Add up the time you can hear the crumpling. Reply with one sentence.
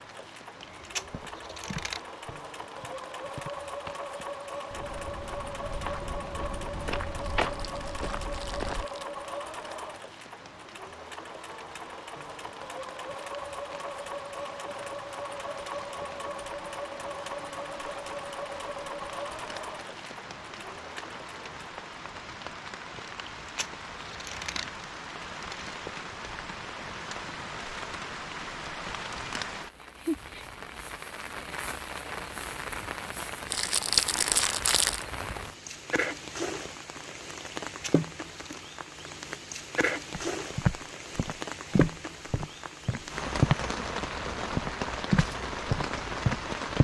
The crumpling can be heard for 3 seconds in total.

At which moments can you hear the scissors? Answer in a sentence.
You can hear the scissors from 0.6 to 2.0 s, from 23.2 to 24.9 s and from 37.7 to 38.6 s.